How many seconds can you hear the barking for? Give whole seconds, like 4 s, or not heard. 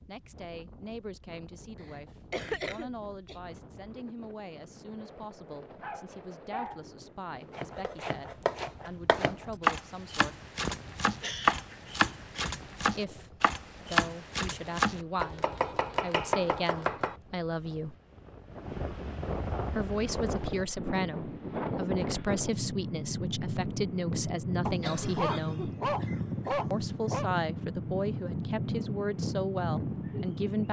4 s.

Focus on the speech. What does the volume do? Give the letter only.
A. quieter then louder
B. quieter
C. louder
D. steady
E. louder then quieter
C.